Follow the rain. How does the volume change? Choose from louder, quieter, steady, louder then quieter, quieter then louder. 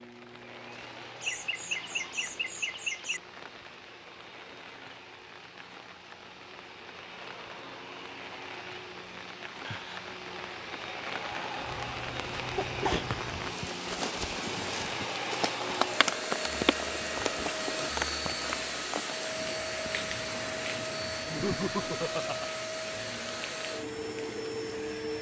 louder then quieter.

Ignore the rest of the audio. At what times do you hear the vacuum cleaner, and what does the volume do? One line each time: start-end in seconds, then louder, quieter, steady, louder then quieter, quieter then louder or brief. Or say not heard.
0.0-25.1 louder.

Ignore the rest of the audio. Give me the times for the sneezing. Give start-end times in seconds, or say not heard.
12.6-13.7.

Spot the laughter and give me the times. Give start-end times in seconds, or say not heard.
1.2-3.2, 9.6-10.1, 21.2-22.5.